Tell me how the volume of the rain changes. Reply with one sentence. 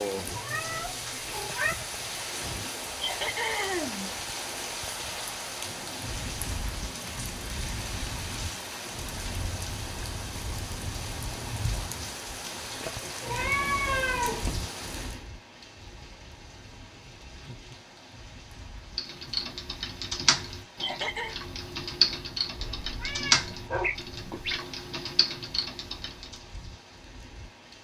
The loudness of the rain goes down.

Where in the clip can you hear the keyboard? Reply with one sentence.
The keyboard can be heard from 18.9 to 26.4 s.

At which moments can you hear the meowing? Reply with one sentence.
You can hear the meowing from 0.3 to 1.8 s, from 13.0 to 14.6 s and from 22.6 to 24.6 s.